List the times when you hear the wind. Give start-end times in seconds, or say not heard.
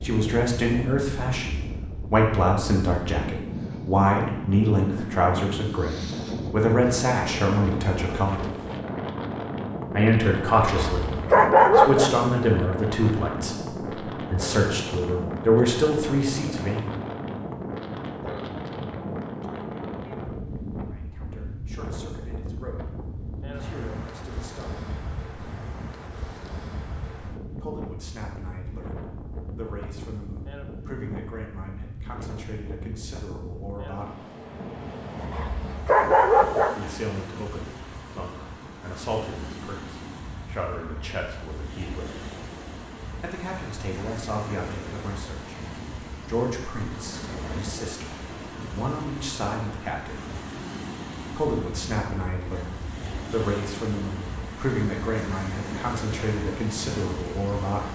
0.0-57.8.